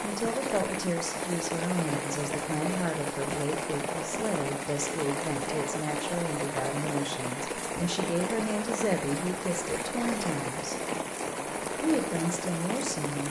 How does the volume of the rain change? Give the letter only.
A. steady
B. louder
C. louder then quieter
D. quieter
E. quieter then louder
A.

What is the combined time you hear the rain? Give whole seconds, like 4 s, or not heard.
13 s.